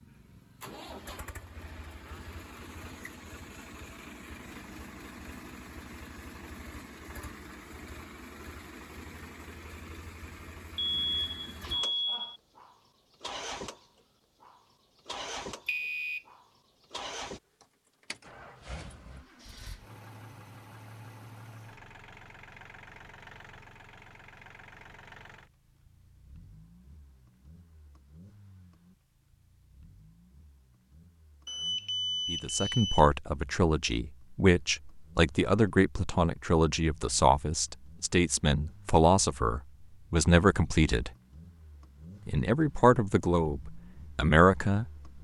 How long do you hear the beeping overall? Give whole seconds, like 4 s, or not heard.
4 s.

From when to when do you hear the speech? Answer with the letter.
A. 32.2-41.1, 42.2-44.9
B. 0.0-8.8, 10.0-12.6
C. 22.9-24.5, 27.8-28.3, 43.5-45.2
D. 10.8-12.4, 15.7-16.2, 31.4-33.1
A.